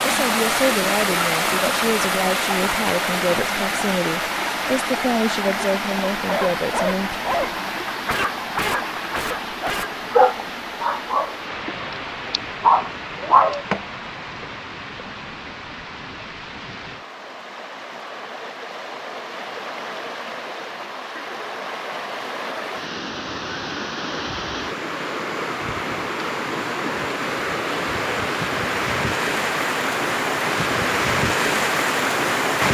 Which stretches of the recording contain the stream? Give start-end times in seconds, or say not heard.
0.0-32.6.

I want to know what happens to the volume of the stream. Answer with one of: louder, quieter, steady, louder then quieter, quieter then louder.
quieter then louder.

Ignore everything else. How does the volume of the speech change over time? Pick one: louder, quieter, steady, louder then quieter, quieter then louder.
steady.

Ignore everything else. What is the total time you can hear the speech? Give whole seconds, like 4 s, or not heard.
7 s.